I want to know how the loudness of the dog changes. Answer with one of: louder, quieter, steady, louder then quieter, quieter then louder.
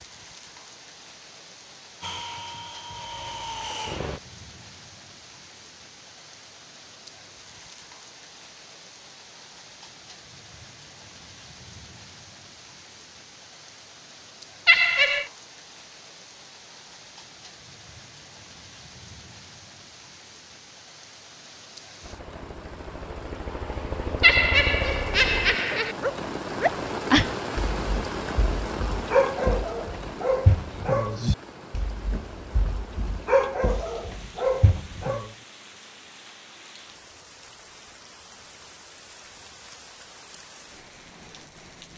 quieter then louder.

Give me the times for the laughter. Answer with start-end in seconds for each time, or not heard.
14.7-15.2, 24.2-25.9.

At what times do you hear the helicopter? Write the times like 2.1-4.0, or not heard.
2.0-4.2, 22.0-25.6.